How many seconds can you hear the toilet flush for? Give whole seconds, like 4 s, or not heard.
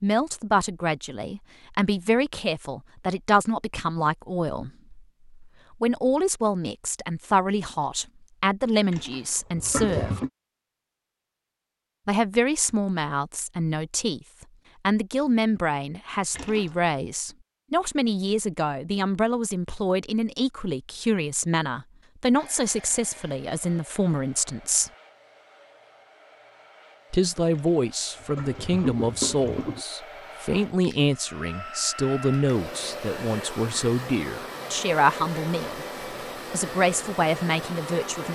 4 s.